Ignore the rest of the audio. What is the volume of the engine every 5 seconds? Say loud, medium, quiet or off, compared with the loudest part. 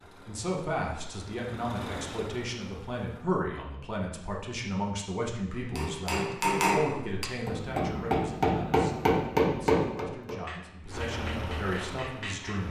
medium, off, loud.